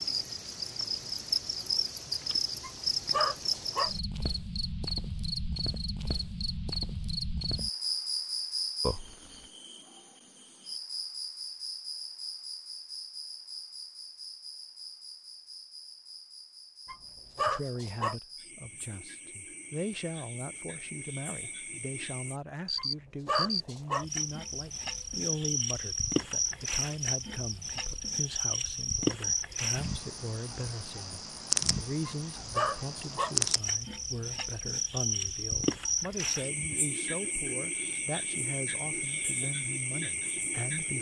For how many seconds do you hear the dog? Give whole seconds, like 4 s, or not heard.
5 s.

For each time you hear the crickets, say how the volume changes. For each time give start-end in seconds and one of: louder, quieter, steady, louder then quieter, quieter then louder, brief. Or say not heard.
0.0-40.9 quieter then louder.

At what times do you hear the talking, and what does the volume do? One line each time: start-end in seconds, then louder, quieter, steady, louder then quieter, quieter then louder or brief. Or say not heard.
17.4-40.9 steady.